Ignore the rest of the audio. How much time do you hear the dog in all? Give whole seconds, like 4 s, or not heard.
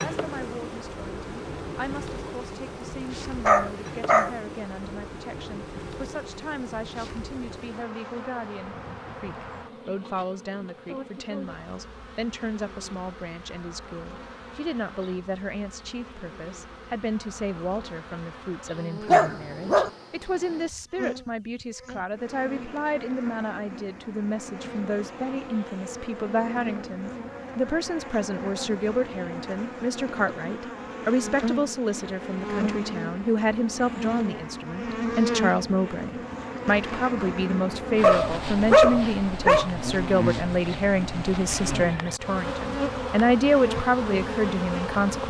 3 s.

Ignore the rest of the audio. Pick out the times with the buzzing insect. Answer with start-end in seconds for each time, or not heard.
0.0-45.2.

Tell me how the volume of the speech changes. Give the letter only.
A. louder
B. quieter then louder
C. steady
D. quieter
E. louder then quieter
A.